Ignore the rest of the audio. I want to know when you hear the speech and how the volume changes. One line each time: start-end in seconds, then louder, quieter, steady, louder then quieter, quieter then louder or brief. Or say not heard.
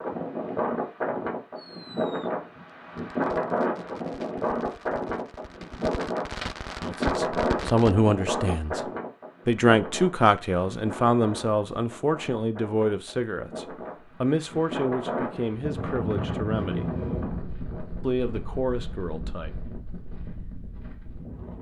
6.8-8.8 brief
9.4-16.9 quieter
18.0-19.5 brief.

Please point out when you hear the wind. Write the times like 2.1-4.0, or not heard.
0.0-21.5.